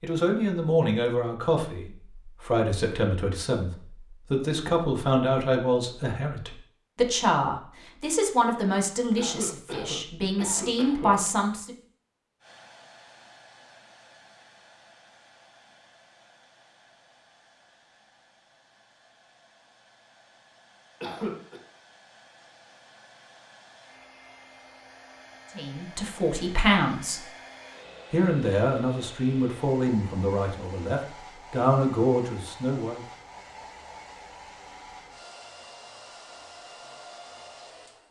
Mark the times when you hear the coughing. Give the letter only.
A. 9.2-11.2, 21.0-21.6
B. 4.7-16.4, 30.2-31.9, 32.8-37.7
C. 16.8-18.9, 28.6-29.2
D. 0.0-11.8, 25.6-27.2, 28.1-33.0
A.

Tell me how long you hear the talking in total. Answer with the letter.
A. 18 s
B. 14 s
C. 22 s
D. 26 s
A.